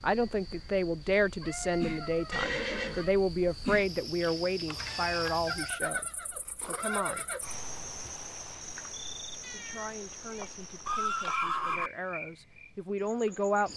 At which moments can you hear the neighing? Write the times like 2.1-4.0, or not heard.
2.3-3.0, 5.5-7.7, 10.4-11.9.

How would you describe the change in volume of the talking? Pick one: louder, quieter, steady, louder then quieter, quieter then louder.
quieter then louder.